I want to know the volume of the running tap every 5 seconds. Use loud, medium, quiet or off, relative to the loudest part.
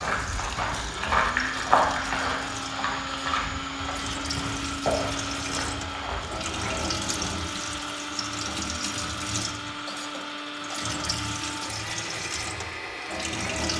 medium, loud, loud.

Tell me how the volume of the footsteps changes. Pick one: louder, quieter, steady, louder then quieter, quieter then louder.
quieter.